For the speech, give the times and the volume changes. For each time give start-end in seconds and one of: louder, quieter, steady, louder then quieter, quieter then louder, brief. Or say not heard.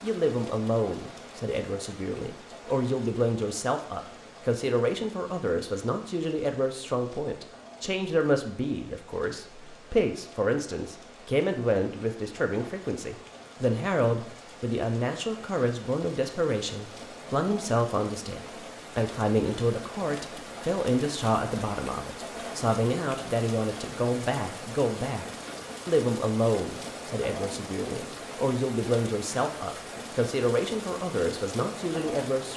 0.0-32.5 steady.